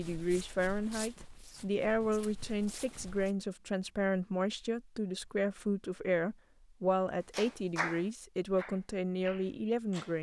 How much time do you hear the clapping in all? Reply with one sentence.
You can hear the clapping for 3 seconds altogether.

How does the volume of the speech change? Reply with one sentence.
The volume of the speech stays about the same.